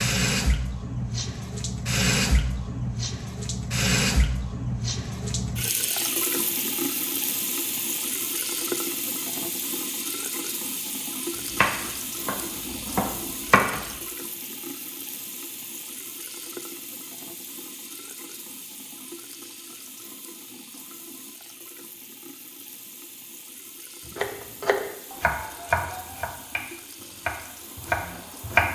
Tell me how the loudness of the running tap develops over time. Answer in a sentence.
The loudness of the running tap goes down.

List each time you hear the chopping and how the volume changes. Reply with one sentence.
You can hear the chopping briefly from 11.5 to 13.9 s; and from 24.1 to 28.7 s, getting quieter then louder.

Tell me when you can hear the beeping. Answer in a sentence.
You can't hear the beeping here.